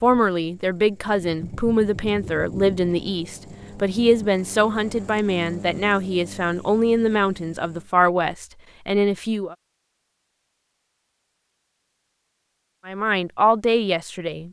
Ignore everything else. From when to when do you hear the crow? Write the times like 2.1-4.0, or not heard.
not heard.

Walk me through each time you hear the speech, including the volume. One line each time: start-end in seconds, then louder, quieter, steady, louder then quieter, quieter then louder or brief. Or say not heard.
0.0-9.6 steady
12.8-14.4 brief.